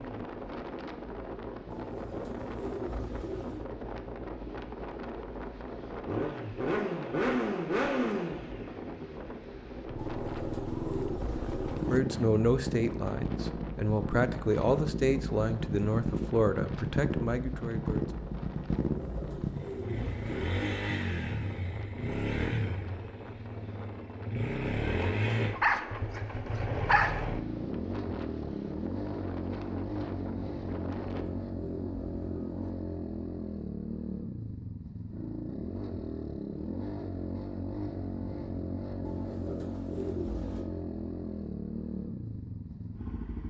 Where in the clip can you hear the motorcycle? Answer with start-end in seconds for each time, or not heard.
0.0-43.4.